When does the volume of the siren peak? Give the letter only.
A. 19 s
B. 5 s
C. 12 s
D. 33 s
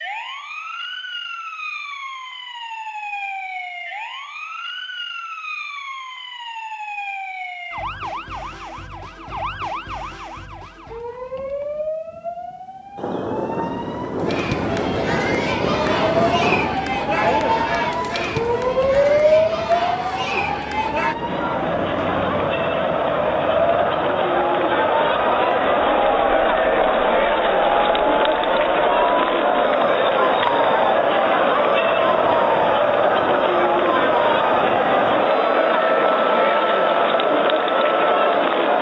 A.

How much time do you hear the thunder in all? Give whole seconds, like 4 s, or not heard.
7 s.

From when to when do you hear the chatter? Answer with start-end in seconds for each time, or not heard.
14.2-38.7.